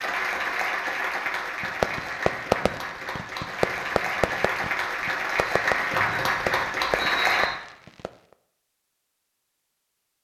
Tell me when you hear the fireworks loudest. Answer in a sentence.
The loudest moment of the fireworks is at 2 seconds.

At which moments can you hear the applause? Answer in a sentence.
You can hear the applause from 0.0 to 7.5 s.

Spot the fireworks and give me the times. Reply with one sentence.
You can hear the fireworks from 1.6 to 8.3 s.